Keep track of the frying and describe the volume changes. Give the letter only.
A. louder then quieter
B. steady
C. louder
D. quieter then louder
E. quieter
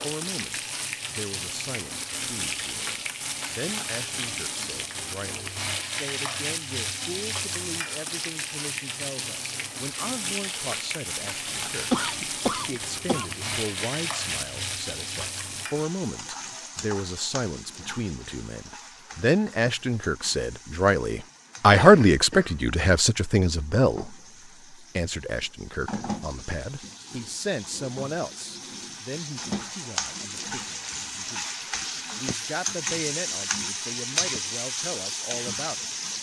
D.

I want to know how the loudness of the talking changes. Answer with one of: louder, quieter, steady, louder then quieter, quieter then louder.
louder then quieter.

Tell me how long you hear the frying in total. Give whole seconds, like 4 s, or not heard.
36 s.